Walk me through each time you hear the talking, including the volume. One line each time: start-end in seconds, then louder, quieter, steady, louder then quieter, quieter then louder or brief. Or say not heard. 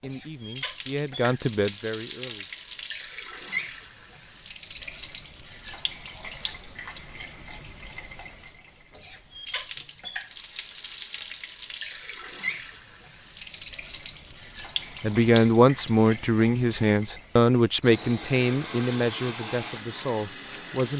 0.0-2.5 brief
15.0-20.9 quieter.